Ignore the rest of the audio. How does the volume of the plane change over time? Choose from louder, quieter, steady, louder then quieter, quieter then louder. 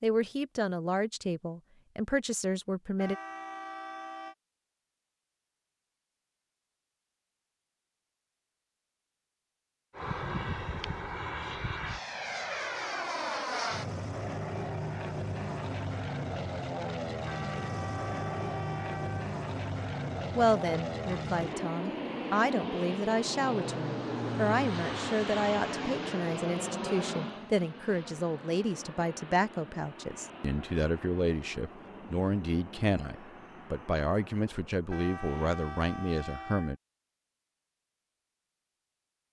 quieter.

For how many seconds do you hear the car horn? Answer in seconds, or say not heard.
5 s.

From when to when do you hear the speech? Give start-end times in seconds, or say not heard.
0.0-3.1, 20.4-36.8.